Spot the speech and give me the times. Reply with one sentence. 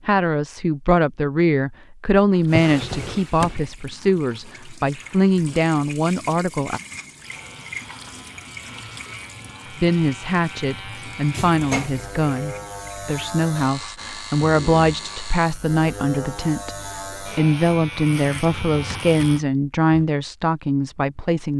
You can hear the speech from 0.1 to 6.8 s and from 9.8 to 21.5 s.